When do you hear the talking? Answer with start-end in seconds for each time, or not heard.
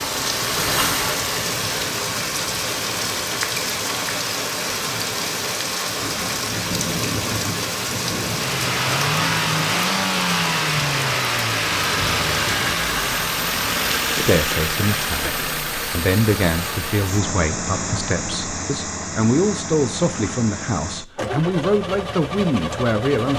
14.2-23.3.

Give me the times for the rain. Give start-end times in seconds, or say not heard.
0.0-14.6.